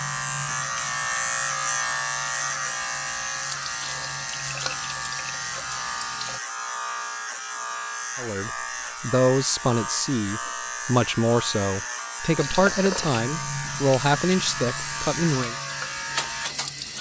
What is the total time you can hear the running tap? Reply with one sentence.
You can hear the running tap for 11 seconds altogether.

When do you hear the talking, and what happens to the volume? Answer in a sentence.
The talking can be heard from 8.2 to 15.6 s, at a steady volume.